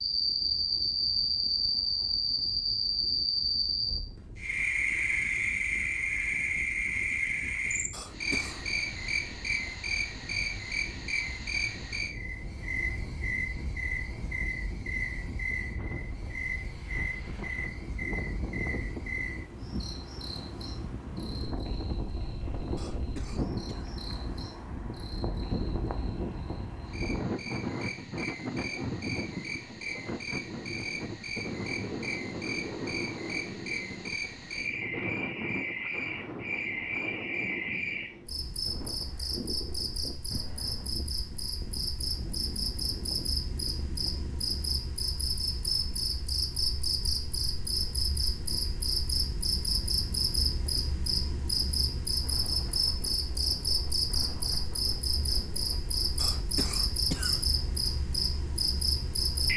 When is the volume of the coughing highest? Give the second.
57 s.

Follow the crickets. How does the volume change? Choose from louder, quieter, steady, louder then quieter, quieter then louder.
quieter then louder.